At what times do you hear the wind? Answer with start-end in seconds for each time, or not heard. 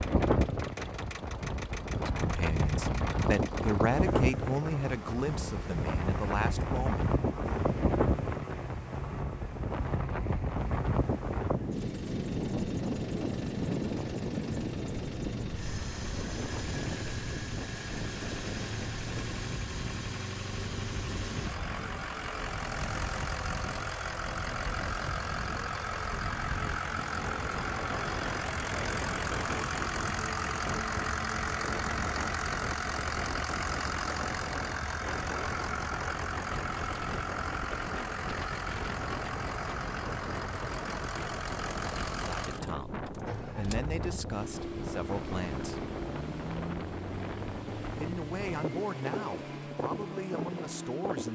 0.0-51.3.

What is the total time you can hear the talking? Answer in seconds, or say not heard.
12 s.